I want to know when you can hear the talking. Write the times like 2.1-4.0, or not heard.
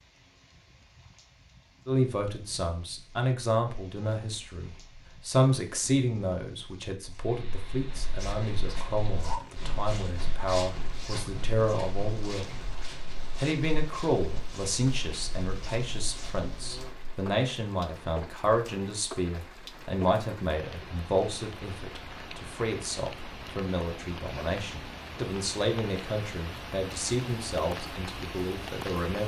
1.9-12.6, 13.3-29.2.